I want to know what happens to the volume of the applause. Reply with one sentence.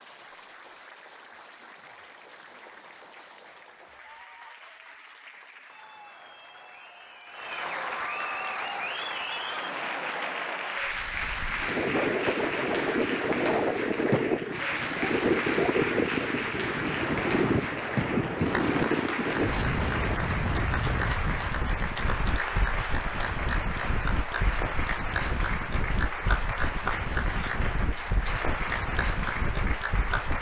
The loudness of the applause goes up.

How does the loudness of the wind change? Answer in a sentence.
The volume of the wind goes down.